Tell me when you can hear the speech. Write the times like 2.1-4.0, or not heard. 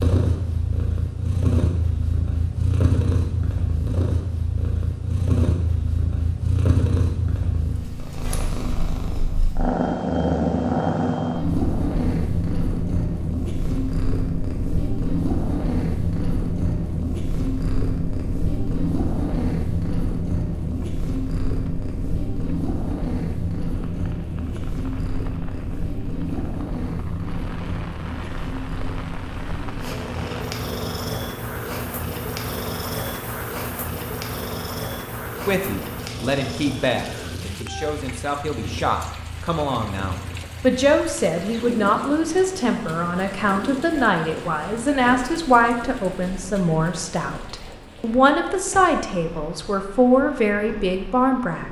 35.5-51.6.